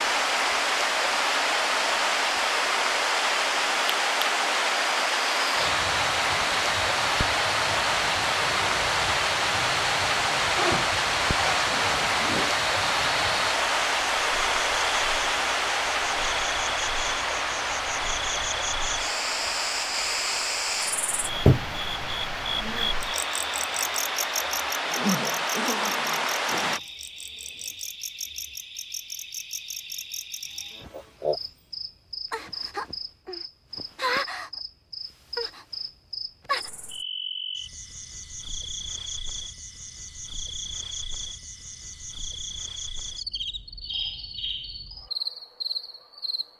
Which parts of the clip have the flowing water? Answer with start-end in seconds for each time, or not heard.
0.0-26.8.